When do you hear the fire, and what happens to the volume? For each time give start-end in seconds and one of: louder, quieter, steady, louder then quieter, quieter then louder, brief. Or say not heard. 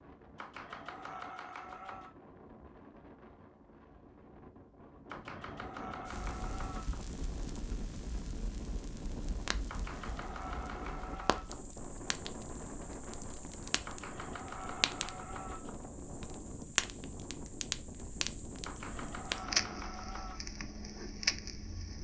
6.0-21.9 louder.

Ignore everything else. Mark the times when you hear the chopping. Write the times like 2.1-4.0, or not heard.
0.3-2.1, 5.1-7.0, 9.7-11.7, 13.8-15.8, 18.6-20.4.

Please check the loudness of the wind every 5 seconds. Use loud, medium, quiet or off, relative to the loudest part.
medium, loud, loud, loud, medium.